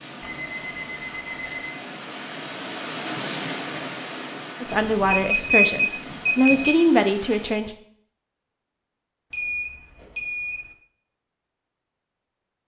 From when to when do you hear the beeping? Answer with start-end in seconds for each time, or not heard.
0.2-1.7, 5.0-6.8, 9.3-10.7.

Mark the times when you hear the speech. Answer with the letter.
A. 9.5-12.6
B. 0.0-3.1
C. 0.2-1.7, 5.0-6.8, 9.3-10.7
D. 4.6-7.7
D.